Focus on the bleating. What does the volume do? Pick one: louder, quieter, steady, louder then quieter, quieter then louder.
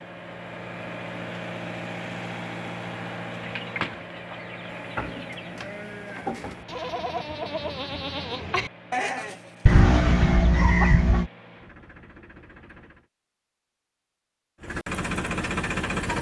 louder.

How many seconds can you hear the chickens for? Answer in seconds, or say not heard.
4 s.